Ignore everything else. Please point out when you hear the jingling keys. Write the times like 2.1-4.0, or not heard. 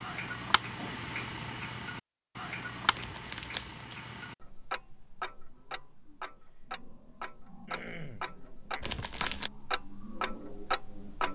not heard.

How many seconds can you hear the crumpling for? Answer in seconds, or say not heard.
2 s.